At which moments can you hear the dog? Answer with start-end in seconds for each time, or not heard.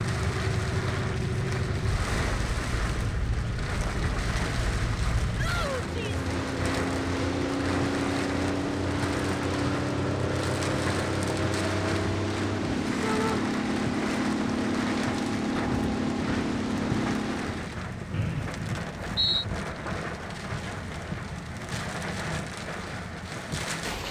not heard.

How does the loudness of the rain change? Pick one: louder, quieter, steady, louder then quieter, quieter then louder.
steady.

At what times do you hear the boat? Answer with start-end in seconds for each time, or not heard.
0.0-17.8.